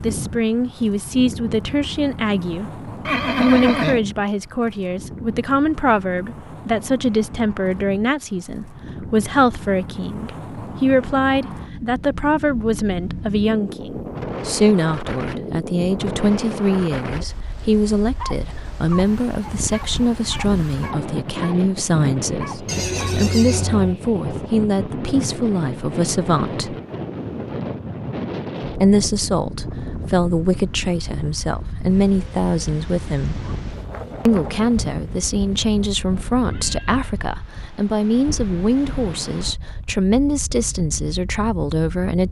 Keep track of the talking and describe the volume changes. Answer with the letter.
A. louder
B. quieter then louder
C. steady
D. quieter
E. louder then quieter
C.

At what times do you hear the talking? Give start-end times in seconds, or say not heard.
0.0-26.8, 28.8-33.4, 34.2-42.2.